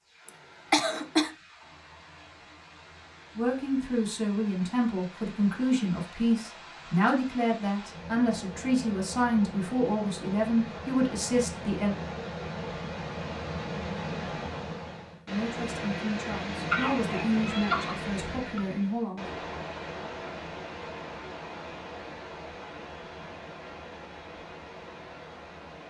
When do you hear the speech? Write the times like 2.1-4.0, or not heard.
3.4-11.9, 15.2-19.2.